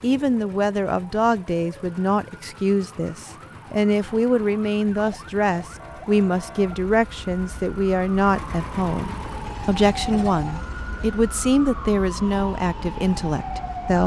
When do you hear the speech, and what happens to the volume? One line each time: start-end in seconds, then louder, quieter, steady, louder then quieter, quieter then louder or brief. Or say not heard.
0.0-14.0 steady.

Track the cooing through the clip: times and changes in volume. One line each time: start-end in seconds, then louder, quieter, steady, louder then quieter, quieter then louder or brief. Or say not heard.
not heard.